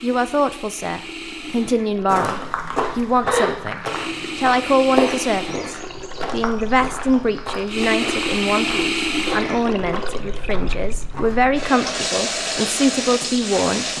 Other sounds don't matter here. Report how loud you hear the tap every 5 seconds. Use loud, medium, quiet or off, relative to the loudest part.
medium, loud, loud.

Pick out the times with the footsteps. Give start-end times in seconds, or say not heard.
2.0-11.9.